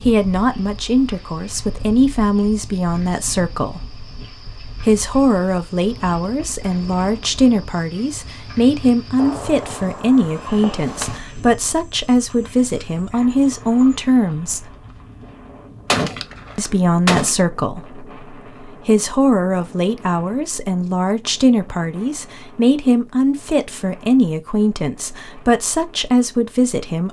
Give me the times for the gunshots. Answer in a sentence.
The gunshots can be heard from 9.2 to 11.2 s and from 15.8 to 17.4 s.